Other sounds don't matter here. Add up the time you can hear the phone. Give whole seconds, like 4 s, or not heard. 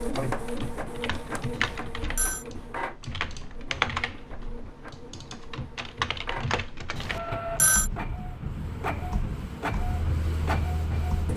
2 s.